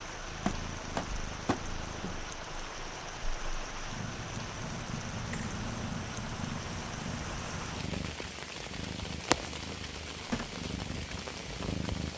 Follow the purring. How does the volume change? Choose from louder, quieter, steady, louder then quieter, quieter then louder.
louder then quieter.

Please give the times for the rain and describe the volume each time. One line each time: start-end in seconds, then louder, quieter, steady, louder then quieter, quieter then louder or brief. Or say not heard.
0.0-12.1 steady.